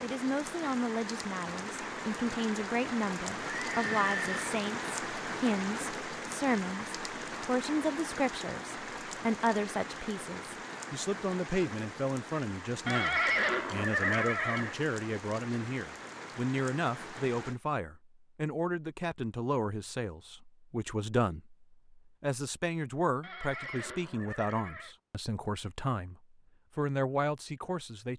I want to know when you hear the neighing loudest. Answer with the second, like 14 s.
13 s.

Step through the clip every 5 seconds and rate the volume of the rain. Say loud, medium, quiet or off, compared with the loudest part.
loud, loud, medium, medium, off, off.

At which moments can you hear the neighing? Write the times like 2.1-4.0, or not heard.
3.4-4.5, 12.8-14.8, 23.2-24.9.